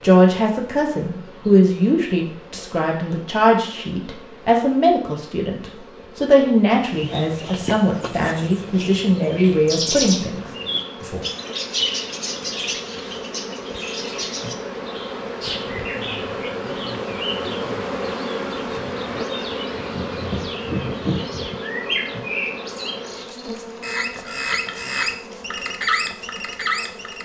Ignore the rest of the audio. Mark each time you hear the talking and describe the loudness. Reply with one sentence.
You can hear the talking from 0.0 to 11.2 s, at a steady volume.